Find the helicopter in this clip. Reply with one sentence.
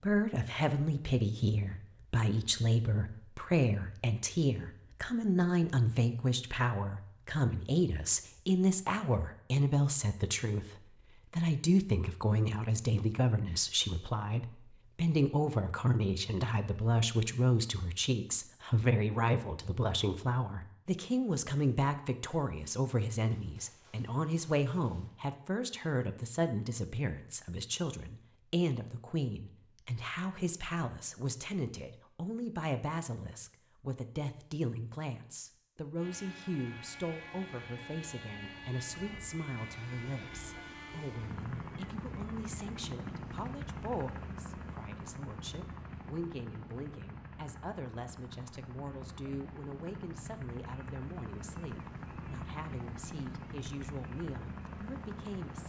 You can hear the helicopter from 36.0 to 55.6 s.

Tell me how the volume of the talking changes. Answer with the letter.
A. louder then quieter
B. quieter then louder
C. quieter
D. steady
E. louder
C.